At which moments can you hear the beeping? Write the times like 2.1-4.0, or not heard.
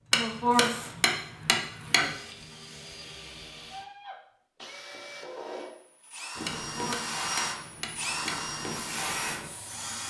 not heard.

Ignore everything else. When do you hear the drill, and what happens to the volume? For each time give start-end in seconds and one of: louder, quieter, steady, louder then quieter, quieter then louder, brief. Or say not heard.
0.0-10.0 louder.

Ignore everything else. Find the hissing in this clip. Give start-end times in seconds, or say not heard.
6.3-10.0.